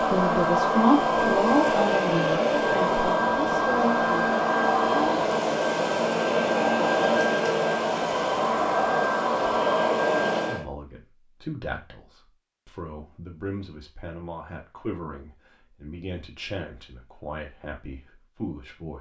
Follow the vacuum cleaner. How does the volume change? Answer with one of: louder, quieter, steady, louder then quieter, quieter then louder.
steady.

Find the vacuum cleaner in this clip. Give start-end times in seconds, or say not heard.
0.0-10.7.